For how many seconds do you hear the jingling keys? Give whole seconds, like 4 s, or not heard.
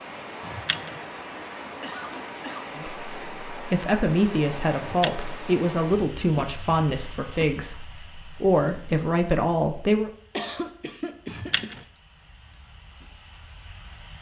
2 s.